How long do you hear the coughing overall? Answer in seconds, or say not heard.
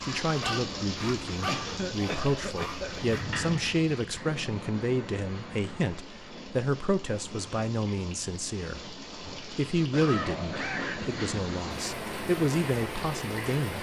3 s.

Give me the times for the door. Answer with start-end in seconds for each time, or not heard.
2.9-4.3.